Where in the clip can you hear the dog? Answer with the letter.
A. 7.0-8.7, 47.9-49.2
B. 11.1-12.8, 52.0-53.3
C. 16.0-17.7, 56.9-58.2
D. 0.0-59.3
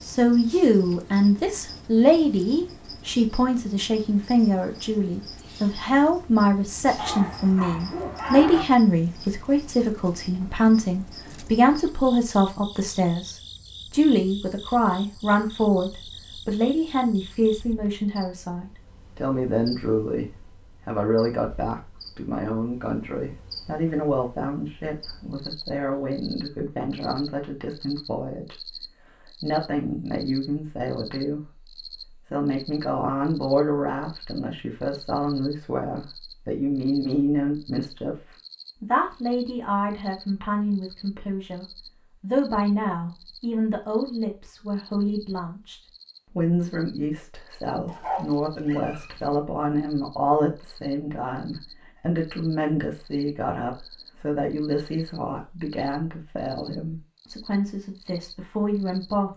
A.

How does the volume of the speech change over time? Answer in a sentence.
The volume of the speech goes down.